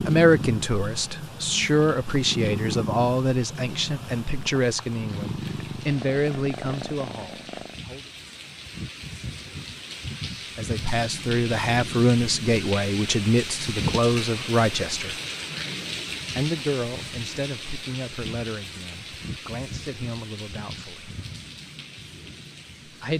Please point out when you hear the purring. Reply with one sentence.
You can hear the purring from 0.0 to 7.8 s.